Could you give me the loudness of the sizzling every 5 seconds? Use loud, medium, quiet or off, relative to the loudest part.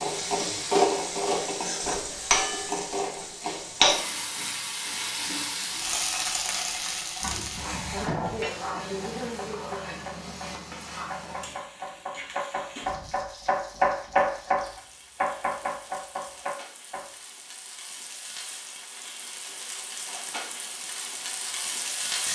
loud, medium, quiet, quiet, medium.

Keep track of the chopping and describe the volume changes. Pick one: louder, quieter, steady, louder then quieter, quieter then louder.
louder then quieter.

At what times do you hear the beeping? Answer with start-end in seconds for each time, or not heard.
7.2-8.6.